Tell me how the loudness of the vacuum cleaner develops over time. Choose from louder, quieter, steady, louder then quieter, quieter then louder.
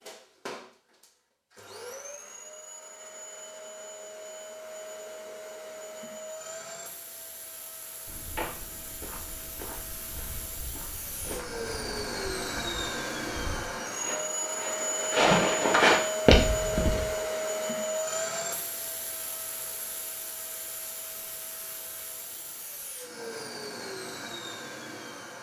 louder then quieter.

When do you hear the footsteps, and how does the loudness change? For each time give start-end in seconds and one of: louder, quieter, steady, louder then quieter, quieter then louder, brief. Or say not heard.
8.1-17.1 louder.